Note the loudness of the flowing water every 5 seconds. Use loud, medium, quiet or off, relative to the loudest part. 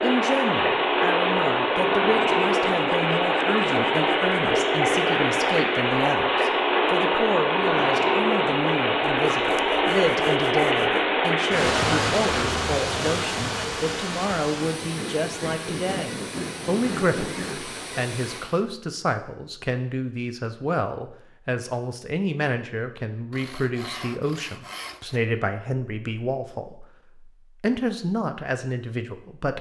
loud, loud, loud, quiet, off, off.